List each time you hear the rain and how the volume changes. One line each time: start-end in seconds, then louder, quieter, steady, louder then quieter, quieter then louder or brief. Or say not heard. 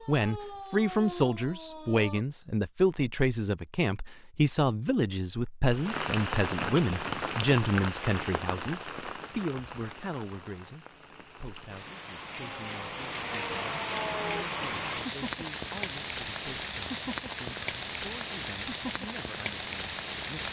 5.7-20.4 quieter then louder.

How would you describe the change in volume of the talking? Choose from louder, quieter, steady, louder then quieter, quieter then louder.
quieter.